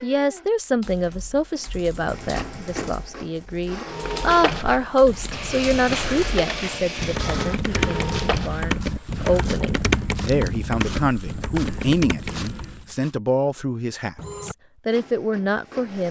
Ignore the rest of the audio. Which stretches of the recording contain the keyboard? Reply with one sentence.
The keyboard can be heard from 0.8 to 12.9 s.